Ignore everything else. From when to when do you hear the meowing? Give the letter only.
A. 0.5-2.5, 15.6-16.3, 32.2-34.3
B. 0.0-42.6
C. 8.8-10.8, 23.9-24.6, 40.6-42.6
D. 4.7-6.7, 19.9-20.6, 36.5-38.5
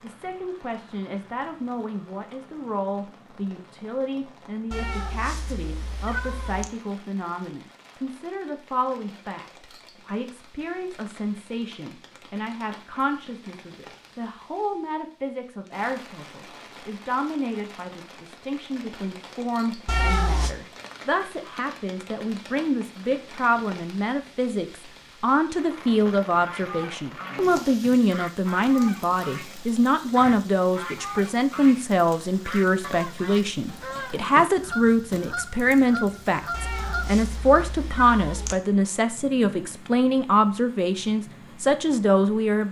D.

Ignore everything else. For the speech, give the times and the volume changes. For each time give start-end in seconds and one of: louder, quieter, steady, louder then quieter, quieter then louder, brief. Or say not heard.
0.0-42.6 louder.